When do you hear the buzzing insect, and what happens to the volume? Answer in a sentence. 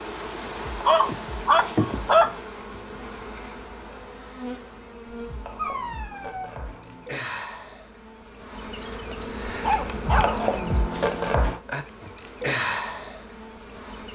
The buzzing insect can be heard from 0.0 to 14.0 s, getting quieter then louder.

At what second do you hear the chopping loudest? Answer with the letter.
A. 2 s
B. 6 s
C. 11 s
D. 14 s
C.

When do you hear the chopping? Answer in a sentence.
The chopping can be heard from 0.6 to 2.4 s, from 5.2 to 7.1 s and from 10.1 to 11.6 s.